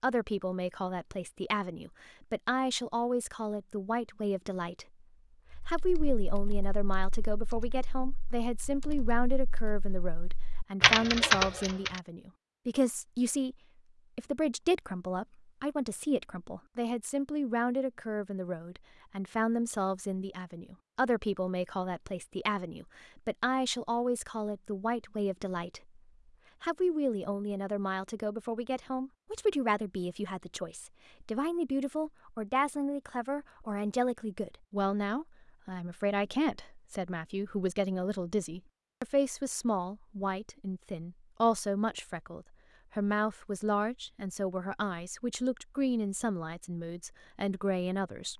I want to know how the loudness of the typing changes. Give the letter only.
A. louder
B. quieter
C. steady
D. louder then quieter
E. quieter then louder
A.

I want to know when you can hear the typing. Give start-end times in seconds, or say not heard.
5.5-12.0.